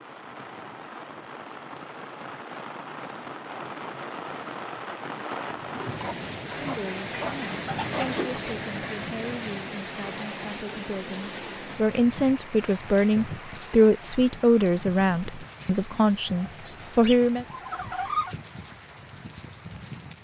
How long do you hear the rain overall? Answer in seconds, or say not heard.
20 s.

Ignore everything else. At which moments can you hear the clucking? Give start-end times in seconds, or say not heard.
5.8-8.4, 16.6-18.4.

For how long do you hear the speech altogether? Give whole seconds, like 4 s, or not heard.
11 s.